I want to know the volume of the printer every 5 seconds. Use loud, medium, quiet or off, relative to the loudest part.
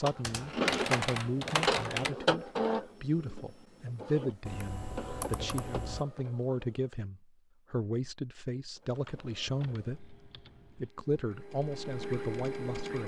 loud, quiet, medium.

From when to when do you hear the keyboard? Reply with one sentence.
You can hear the keyboard from 0.2 to 2.1 s, from 4.5 to 6.0 s and from 8.9 to 10.9 s.